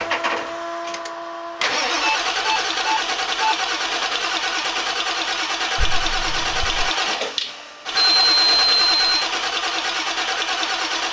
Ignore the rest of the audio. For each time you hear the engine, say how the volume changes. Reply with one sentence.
The engine can be heard from 0.0 to 11.0 s, at a steady volume.